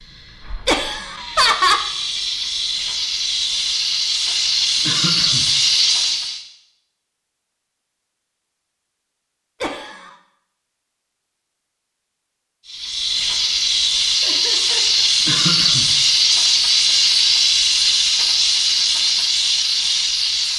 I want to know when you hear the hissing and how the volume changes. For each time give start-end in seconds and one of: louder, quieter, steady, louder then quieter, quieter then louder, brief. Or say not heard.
0.0-6.4 louder
12.7-20.5 steady.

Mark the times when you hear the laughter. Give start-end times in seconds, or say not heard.
0.7-1.9, 9.6-10.2, 14.2-15.1.